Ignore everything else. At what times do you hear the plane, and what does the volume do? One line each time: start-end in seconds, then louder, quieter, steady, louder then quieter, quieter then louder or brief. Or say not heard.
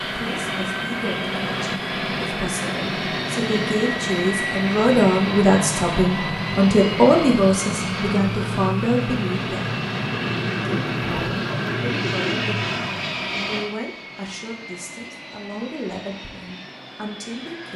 0.0-17.7 quieter.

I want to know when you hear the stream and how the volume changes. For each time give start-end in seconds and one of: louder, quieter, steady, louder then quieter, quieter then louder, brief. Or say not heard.
not heard.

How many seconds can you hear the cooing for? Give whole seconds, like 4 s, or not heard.
2 s.